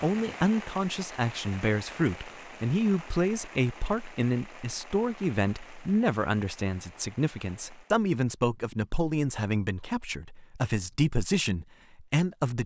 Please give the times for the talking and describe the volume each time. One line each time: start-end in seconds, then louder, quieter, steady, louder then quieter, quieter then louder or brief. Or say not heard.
0.0-12.6 steady.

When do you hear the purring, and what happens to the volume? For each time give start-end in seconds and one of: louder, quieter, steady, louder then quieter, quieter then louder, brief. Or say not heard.
not heard.